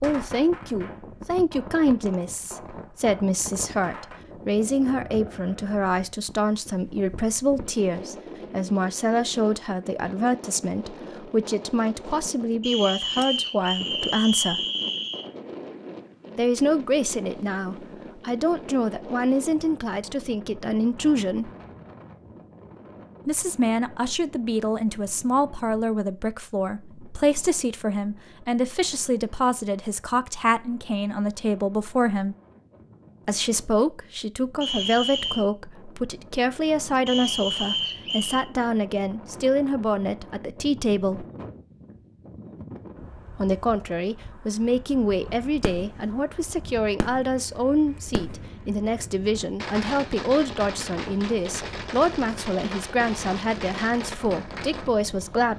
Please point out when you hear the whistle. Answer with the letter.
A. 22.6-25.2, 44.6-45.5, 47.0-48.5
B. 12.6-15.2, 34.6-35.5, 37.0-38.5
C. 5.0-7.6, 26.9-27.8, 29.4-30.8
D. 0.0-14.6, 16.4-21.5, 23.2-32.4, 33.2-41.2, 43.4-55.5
B.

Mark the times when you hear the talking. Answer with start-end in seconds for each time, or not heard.
0.0-14.6, 16.4-21.5, 23.2-32.4, 33.2-41.2, 43.4-55.5.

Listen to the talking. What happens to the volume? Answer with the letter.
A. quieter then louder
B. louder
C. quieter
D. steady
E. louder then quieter
D.